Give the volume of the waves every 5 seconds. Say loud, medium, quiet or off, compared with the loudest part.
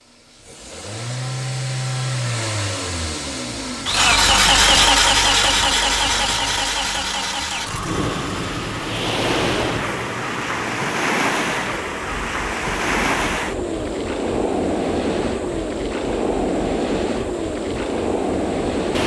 off, loud, loud, loud.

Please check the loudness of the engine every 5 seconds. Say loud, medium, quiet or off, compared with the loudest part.
loud, loud, quiet, quiet.